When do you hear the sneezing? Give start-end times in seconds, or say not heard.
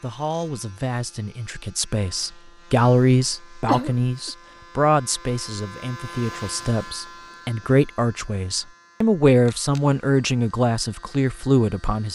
3.6-4.3.